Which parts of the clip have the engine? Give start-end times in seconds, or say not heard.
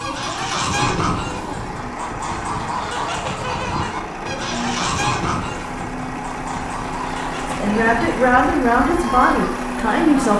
0.0-10.3.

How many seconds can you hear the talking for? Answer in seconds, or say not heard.
3 s.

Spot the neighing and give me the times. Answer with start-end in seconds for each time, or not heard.
not heard.